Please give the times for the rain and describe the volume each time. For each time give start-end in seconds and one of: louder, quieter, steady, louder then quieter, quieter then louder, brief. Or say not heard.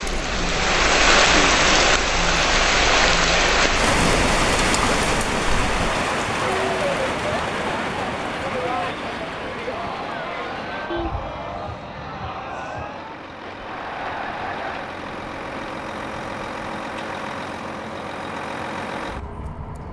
0.0-15.7 quieter.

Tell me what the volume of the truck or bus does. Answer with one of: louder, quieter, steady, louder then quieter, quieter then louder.
louder.